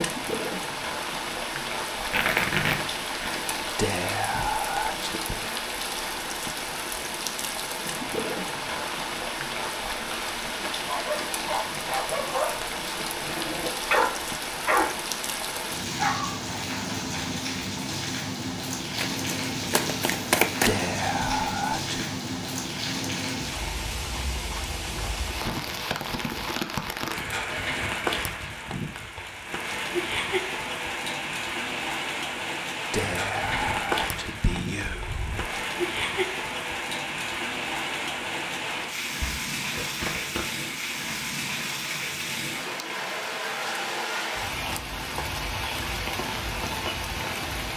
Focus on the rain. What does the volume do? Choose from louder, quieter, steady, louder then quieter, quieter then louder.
steady.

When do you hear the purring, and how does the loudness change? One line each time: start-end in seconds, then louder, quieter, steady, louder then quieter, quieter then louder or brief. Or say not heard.
not heard.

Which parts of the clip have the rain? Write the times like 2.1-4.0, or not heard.
0.0-47.7.